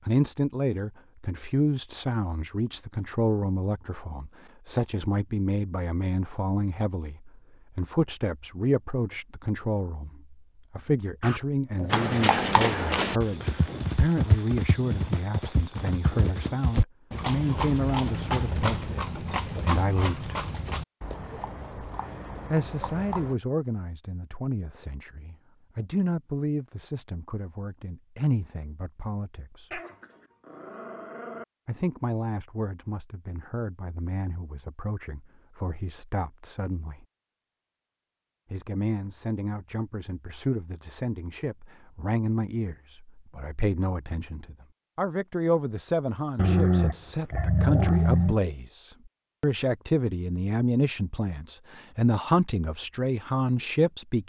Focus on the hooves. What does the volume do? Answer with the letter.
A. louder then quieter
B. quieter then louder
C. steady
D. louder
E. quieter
E.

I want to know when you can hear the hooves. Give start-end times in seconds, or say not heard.
11.9-23.4.